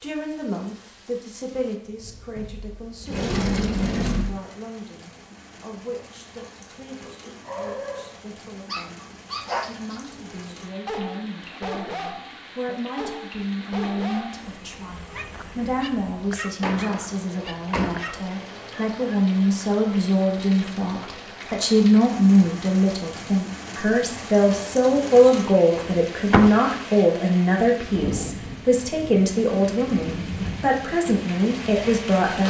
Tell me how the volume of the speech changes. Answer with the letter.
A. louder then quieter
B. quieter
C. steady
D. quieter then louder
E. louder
E.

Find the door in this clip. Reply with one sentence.
The door can be heard from 2.4 to 4.3 s, from 16.6 to 18.0 s and from 25.8 to 26.5 s.